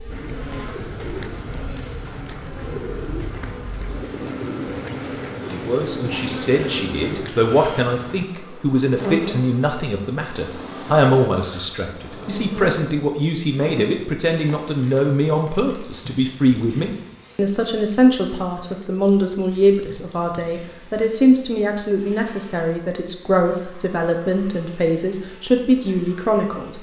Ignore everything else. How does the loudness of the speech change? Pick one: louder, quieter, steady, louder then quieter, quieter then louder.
steady.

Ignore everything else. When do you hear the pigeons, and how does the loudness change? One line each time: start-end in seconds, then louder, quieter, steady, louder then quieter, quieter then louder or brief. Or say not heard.
0.1-8.2 steady.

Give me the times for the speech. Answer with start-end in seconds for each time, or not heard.
5.5-26.7.